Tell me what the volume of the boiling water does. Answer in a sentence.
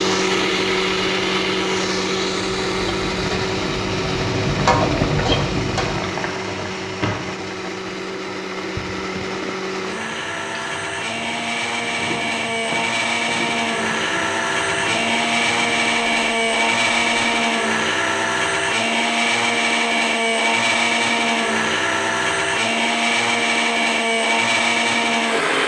The volume of the boiling water goes up, then down.